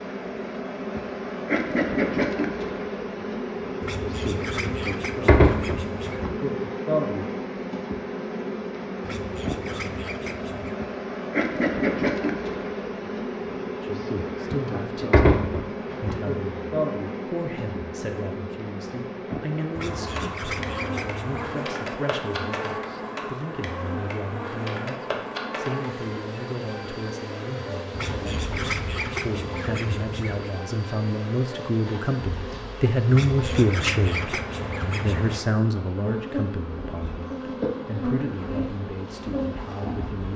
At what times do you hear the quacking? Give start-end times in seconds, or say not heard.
3.8-6.2, 9.0-10.8, 19.8-21.6, 27.9-30.6, 33.1-35.5.